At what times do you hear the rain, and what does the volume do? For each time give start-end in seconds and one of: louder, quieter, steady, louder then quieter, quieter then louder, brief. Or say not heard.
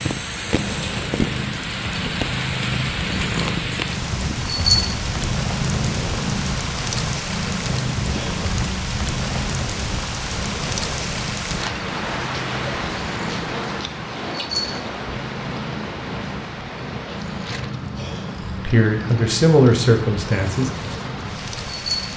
0.0-22.1 quieter.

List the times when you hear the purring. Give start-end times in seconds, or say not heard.
0.0-22.1.